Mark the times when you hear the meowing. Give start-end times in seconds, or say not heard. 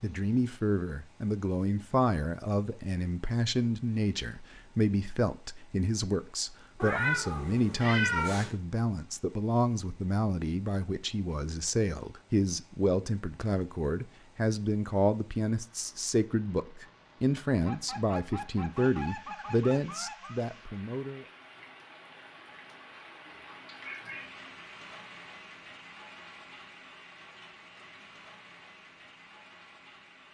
6.8-8.5, 23.5-24.3.